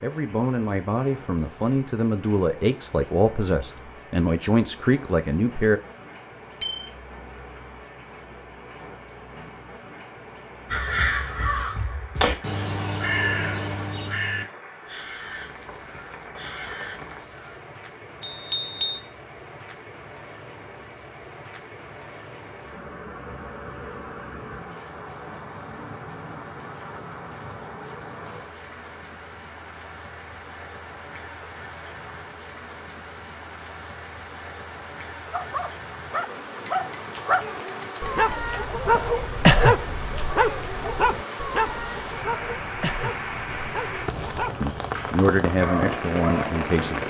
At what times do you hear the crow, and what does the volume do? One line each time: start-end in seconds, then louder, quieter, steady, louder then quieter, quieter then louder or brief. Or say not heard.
10.7-17.6 quieter.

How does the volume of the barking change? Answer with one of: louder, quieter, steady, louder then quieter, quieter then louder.
louder then quieter.